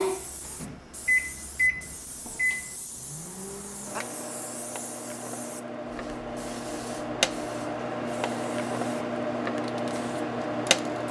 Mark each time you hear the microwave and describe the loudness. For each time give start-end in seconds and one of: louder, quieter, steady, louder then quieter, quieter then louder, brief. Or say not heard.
0.0-11.0 quieter then louder.